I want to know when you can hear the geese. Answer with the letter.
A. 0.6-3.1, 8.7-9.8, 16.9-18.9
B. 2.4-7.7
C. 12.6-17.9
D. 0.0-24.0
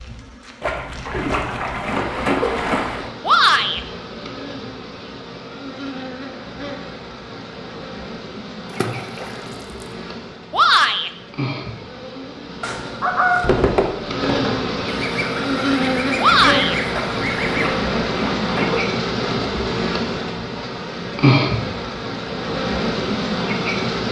C.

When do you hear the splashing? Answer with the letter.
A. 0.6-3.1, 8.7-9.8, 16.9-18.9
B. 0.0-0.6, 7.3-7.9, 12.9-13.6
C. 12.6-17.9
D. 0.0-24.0
A.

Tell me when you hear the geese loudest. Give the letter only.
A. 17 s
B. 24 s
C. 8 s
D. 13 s
D.